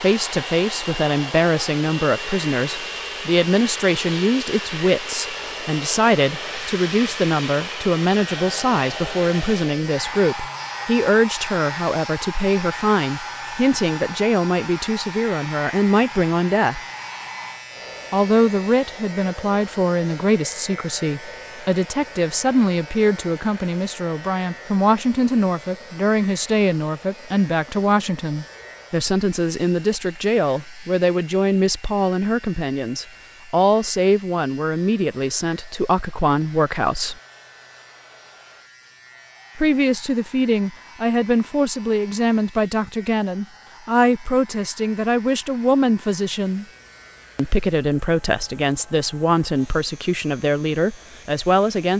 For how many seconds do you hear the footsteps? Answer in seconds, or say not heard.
not heard.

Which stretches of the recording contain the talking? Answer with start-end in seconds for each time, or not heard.
0.0-16.8, 18.1-37.1, 39.5-46.6, 47.4-51.9.